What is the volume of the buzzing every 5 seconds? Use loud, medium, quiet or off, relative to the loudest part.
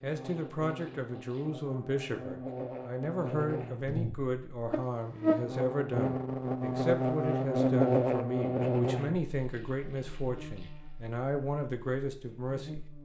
medium, loud, quiet.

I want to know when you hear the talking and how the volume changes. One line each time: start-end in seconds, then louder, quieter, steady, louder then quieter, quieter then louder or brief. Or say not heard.
0.0-12.8 steady.